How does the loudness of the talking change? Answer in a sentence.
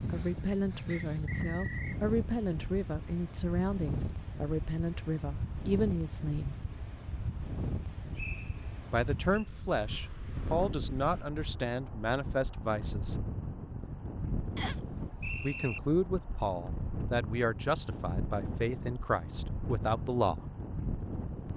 The volume of the talking stays about the same.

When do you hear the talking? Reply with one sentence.
You can hear the talking from 0.0 to 6.5 s, from 8.9 to 13.2 s and from 15.4 to 20.4 s.